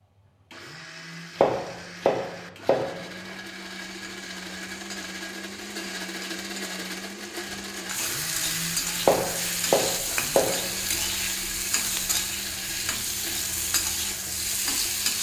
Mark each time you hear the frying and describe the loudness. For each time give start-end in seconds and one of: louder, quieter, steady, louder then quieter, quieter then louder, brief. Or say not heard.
3.5-15.1 louder.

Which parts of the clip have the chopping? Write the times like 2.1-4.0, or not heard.
1.4-3.4, 9.0-11.0.